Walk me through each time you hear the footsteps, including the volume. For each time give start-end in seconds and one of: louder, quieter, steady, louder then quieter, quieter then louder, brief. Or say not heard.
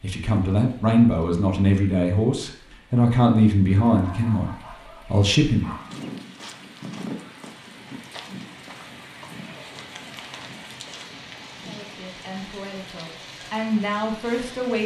5.8-11.9 quieter.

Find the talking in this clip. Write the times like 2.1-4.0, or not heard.
0.0-5.7, 11.6-14.8.